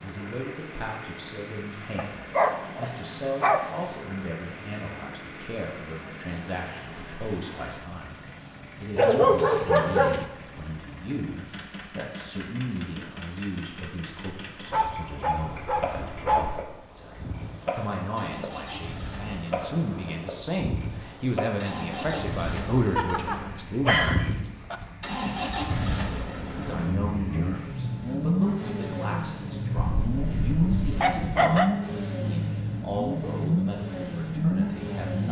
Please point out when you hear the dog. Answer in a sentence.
The dog can be heard from 1.9 to 3.9 s, from 8.9 to 10.2 s, from 14.6 to 16.6 s, from 22.9 to 24.8 s and from 29.8 to 31.7 s.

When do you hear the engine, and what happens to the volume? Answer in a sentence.
You can hear the engine from 0.0 to 35.2 s, getting louder.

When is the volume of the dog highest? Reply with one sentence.
The volume of the dog peaks at 9 seconds.